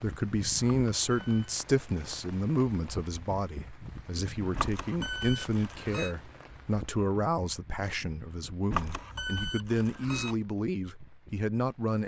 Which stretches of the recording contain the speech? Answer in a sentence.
The speech can be heard from 0.0 to 12.0 s.